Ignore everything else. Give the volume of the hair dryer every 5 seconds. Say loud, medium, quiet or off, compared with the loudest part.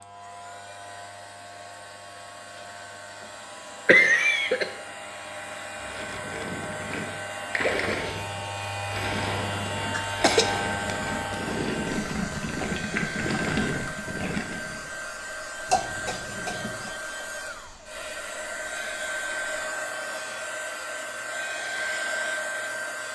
quiet, medium, loud, loud, loud.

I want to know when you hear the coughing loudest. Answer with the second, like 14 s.
4 s.